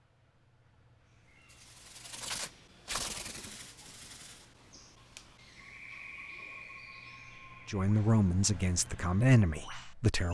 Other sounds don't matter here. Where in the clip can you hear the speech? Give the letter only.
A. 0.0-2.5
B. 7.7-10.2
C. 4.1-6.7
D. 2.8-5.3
B.